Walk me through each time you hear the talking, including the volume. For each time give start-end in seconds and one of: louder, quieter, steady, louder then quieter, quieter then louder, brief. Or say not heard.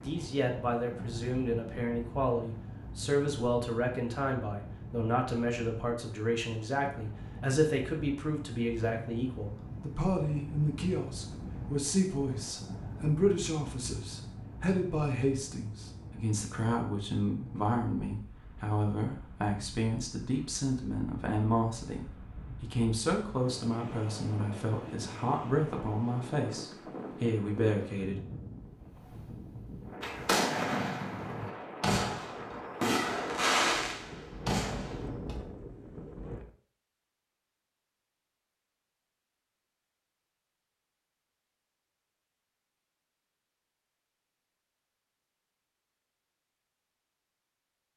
0.0-28.2 steady.